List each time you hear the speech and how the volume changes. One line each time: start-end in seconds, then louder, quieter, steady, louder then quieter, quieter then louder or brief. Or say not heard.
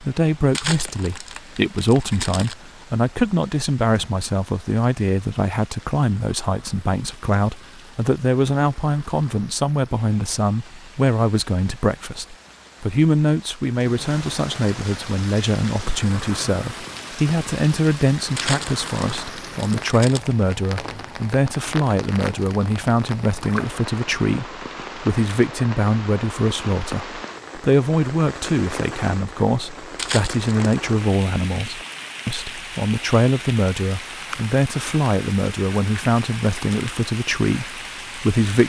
0.0-38.6 steady.